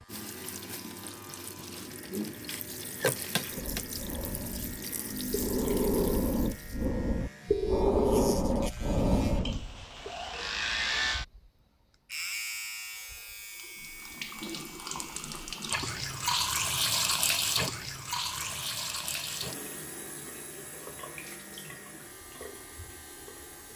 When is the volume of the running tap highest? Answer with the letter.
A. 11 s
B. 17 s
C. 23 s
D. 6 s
B.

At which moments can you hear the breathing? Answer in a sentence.
The breathing can be heard from 3.5 to 10.1 s.